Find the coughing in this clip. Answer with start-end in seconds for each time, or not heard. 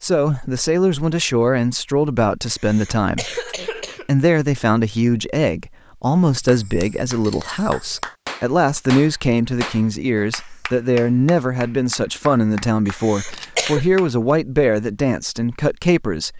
2.5-4.0, 12.8-13.8.